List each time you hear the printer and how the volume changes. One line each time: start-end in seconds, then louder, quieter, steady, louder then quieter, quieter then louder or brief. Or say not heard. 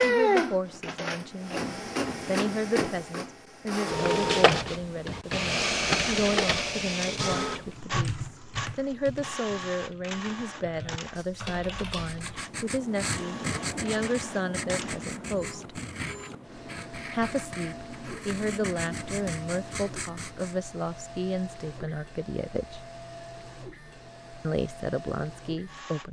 0.0-26.0 quieter.